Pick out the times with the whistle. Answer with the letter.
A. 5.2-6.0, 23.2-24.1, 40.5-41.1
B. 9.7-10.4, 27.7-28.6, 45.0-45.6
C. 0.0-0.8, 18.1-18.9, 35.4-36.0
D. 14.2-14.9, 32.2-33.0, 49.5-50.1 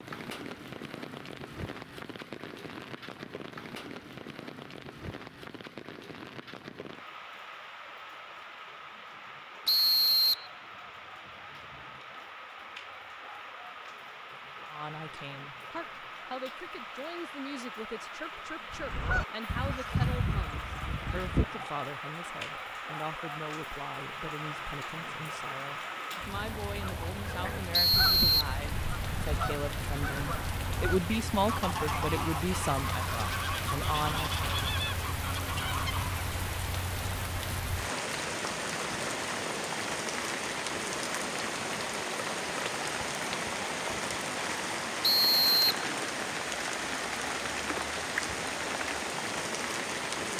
B.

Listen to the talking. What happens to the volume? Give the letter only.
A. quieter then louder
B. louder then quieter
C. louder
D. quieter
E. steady
C.